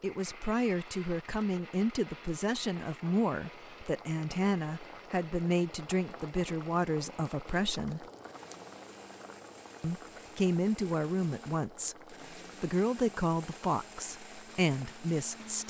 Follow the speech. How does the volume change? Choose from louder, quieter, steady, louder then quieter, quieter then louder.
steady.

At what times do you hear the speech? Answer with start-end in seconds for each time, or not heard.
0.0-8.1, 9.8-15.6.